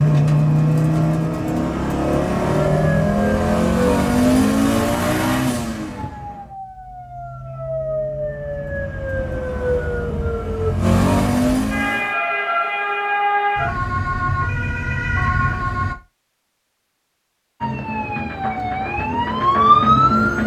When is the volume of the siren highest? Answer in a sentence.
The volume of the siren peaks at 20 seconds.